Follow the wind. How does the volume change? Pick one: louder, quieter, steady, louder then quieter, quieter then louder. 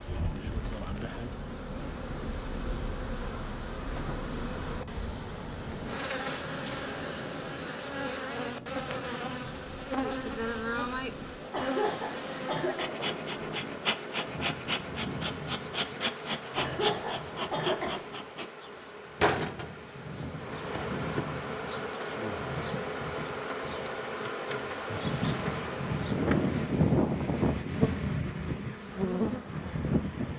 louder.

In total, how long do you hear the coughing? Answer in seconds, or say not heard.
3 s.